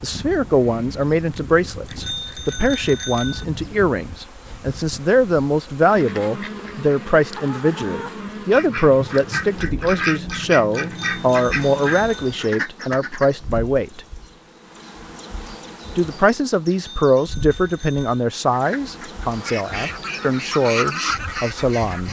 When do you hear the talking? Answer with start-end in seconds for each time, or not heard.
0.0-14.0, 15.9-22.0.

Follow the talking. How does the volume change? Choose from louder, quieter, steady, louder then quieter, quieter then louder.
steady.